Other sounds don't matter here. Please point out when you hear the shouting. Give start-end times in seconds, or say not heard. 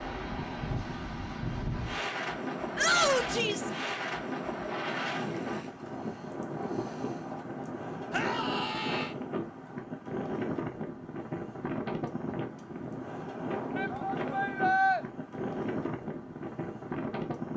2.8-3.7, 8.1-9.2, 13.8-15.1.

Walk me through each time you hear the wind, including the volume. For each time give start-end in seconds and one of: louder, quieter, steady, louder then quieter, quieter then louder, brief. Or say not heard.
0.0-17.5 steady.